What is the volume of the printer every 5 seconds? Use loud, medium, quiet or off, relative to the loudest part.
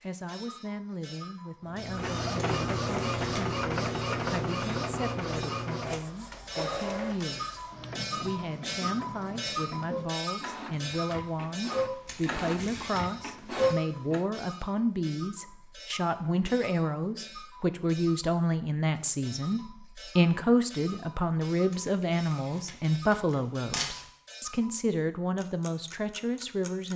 loud, medium, loud, off, off, off.